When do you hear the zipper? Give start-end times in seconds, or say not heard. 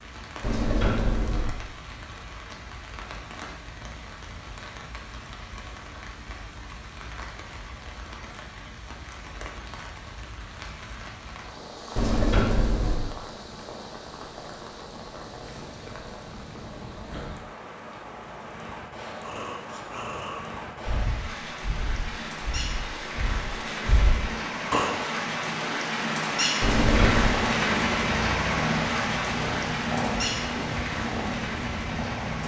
not heard.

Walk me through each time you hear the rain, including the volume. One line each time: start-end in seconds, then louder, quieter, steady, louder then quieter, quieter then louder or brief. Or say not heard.
0.0-32.4 louder.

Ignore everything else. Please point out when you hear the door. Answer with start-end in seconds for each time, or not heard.
0.4-1.6, 11.9-13.1, 26.6-27.4.